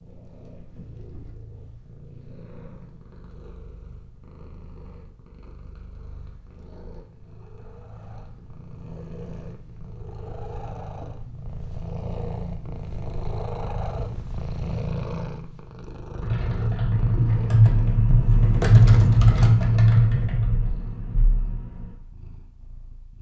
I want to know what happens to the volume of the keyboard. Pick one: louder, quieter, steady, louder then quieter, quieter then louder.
louder then quieter.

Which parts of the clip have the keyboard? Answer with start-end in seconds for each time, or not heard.
16.2-21.9.